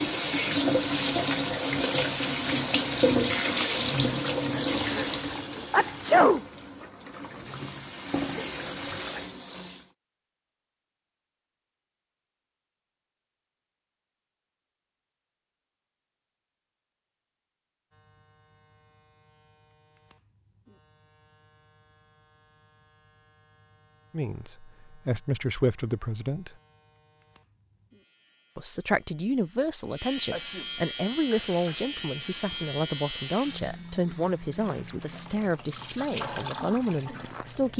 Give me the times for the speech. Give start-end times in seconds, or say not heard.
24.1-26.6, 28.6-37.7.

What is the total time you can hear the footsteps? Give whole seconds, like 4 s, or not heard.
not heard.